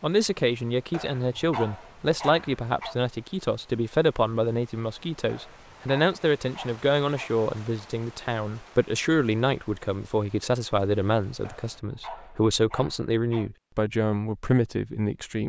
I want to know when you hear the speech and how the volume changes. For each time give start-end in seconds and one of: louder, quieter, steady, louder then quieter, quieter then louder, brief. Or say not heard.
0.0-15.4 steady.